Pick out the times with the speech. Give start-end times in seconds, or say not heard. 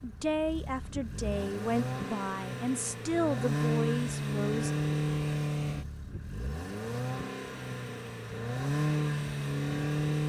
0.0-4.7.